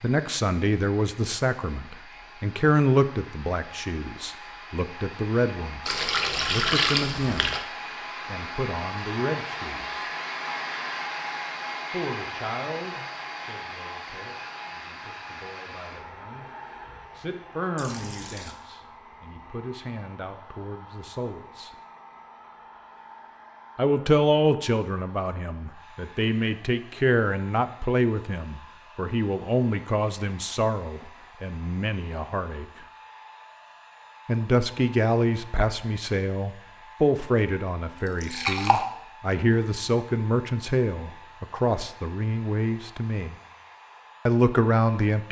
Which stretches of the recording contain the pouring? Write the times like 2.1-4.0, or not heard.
5.8-7.6, 17.8-18.6, 38.0-38.9.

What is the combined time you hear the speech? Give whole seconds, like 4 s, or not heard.
38 s.